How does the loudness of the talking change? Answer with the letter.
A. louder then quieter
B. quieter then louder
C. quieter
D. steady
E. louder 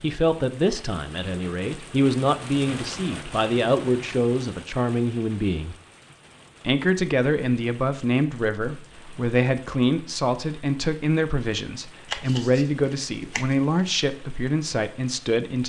D.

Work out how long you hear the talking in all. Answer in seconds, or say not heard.
15 s.